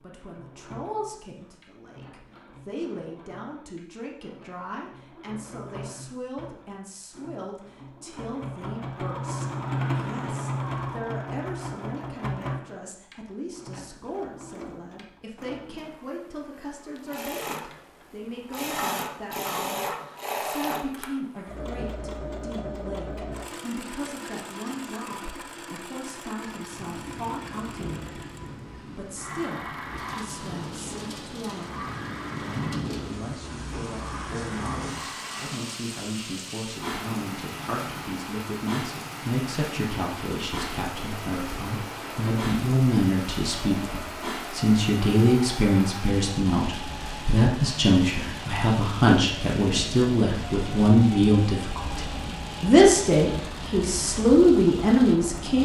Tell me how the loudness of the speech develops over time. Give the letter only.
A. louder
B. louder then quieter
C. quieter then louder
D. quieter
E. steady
A.